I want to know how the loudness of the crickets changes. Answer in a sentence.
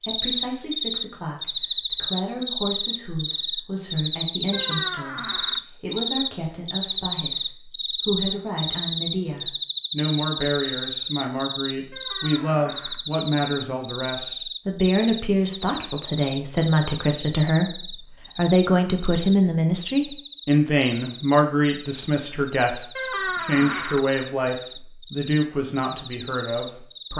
The volume of the crickets goes down.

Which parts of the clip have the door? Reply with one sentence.
You can hear the door from 4.5 to 5.6 s, from 11.9 to 13.0 s and from 22.9 to 24.1 s.